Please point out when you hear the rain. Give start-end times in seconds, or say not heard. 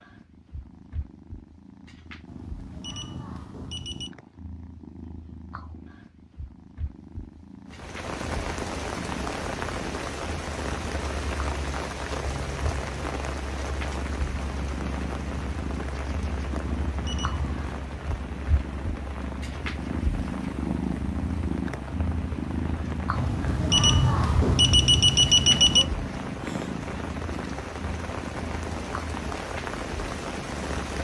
7.7-30.9.